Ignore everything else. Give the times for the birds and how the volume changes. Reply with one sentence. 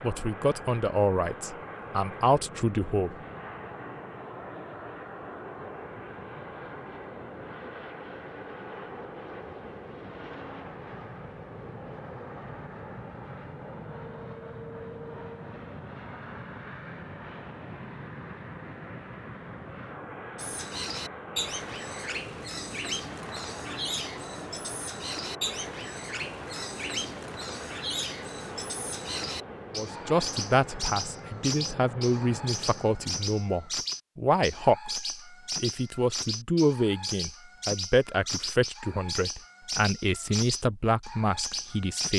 You can hear the birds from 20.4 to 42.1 s, at a steady volume.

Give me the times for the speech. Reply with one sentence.
You can hear the speech from 0.0 to 3.1 s and from 29.7 to 42.1 s.